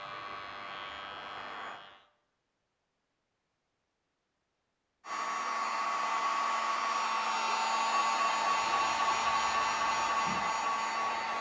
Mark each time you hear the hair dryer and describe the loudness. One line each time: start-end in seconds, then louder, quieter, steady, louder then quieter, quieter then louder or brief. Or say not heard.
0.0-1.8 brief
5.0-11.3 steady.